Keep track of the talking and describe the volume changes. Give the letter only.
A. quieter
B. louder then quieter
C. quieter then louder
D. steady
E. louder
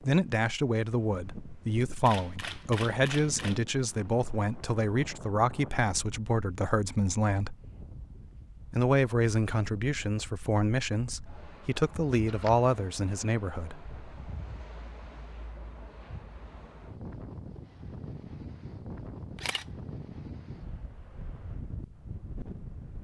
D.